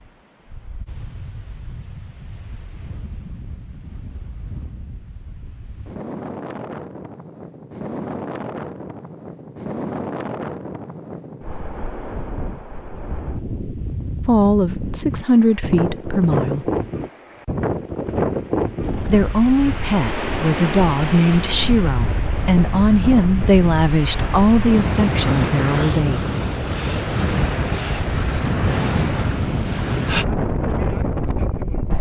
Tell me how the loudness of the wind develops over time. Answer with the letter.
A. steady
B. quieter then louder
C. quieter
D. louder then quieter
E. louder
E.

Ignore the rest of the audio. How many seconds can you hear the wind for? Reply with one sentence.
You can hear the wind for 32 seconds altogether.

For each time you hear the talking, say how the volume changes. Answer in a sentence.
You can hear the talking briefly from 14.2 to 16.7 s; and from 19.1 to 26.2 s, at a steady volume.